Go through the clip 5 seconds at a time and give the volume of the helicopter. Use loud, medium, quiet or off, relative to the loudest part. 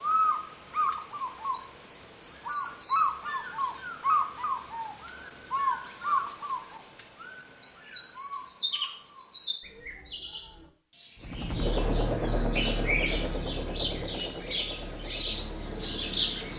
off, off, loud, medium.